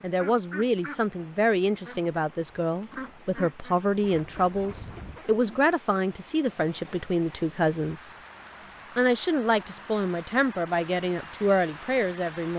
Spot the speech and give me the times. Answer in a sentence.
You can hear the speech from 0.0 to 8.2 s and from 8.9 to 12.5 s.